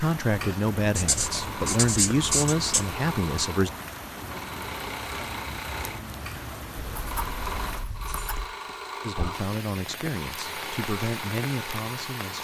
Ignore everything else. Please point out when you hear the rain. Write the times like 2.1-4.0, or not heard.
0.0-12.3.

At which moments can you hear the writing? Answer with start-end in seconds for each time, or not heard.
0.9-2.9, 7.0-8.6.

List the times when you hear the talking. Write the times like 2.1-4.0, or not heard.
0.0-3.7, 9.0-12.3.